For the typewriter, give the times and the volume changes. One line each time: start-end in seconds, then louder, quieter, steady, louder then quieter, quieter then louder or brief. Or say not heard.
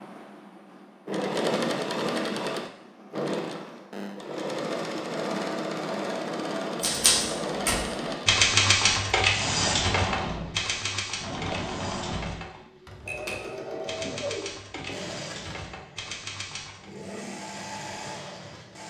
6.8-16.9 quieter.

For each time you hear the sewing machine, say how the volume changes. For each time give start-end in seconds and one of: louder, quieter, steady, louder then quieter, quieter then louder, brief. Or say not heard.
0.0-18.8 quieter.